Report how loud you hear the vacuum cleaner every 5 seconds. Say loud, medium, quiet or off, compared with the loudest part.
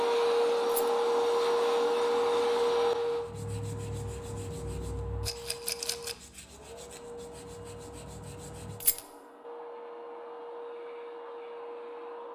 loud, quiet, quiet.